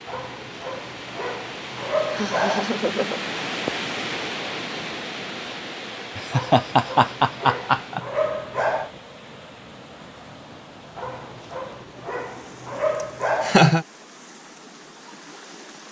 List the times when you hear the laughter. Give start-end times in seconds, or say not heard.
2.1-3.3, 6.2-8.0, 13.0-13.8.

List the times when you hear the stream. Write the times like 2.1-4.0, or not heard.
0.0-15.8.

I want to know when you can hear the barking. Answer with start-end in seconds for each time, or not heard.
0.1-2.6, 6.3-8.9, 10.9-13.7.